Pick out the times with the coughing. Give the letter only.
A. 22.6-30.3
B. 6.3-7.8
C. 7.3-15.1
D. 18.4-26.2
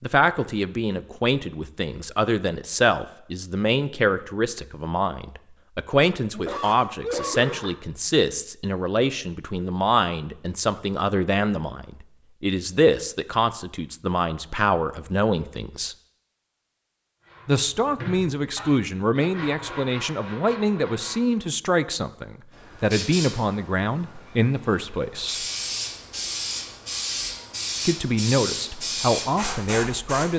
B.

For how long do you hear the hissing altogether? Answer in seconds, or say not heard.
8 s.